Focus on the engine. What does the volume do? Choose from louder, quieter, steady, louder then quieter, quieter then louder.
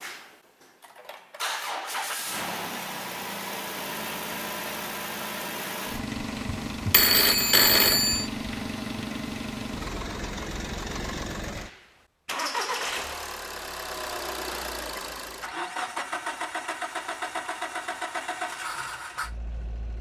steady.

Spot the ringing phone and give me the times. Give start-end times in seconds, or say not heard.
6.7-8.3.